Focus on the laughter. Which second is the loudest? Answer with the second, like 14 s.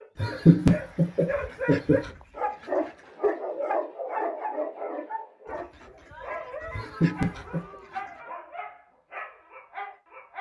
1 s.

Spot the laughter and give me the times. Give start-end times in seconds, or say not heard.
0.1-2.0, 6.8-7.7.